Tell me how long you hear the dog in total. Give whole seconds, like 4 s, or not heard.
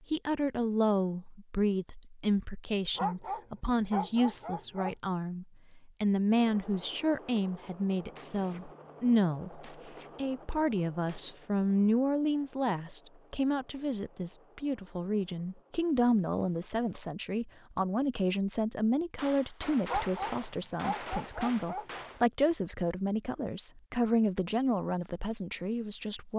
4 s.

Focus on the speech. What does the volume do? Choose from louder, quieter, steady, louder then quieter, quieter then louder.
steady.